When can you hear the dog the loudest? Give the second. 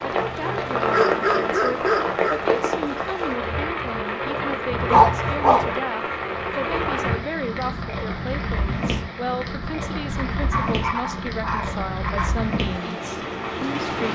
5 s.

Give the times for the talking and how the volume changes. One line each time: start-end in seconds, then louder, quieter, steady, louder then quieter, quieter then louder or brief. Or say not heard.
0.0-14.1 steady.